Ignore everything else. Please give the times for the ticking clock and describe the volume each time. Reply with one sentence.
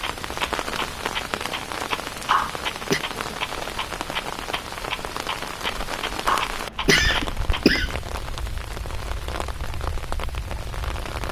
The ticking clock can be heard from 0.0 to 11.2 s, getting quieter.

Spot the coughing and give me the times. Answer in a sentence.
The coughing can be heard from 2.3 to 3.0 s and from 6.2 to 8.0 s.